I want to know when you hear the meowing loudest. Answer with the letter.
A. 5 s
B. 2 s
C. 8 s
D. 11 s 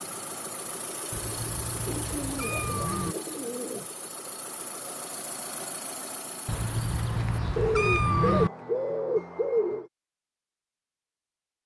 C.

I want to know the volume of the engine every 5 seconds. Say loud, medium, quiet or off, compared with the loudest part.
loud, loud, off.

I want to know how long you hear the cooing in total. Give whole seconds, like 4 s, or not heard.
4 s.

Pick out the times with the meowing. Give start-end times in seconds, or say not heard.
1.1-3.1, 6.5-8.5.